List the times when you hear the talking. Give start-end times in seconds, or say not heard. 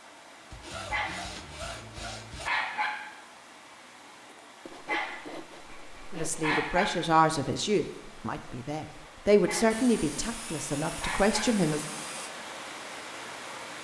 6.1-11.8.